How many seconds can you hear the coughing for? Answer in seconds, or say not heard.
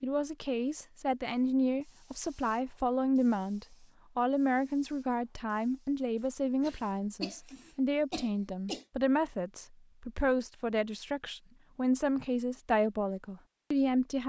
3 s.